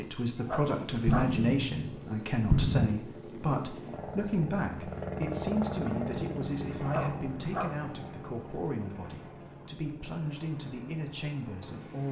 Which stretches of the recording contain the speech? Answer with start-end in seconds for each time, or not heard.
0.0-12.0.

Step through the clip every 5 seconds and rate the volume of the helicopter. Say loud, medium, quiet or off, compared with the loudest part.
medium, loud, medium.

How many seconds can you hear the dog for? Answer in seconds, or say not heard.
2 s.